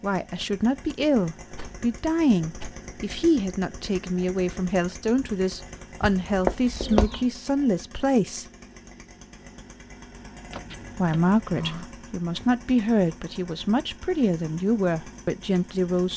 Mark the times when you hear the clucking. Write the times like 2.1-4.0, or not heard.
6.0-7.2.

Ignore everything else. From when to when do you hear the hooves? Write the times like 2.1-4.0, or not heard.
not heard.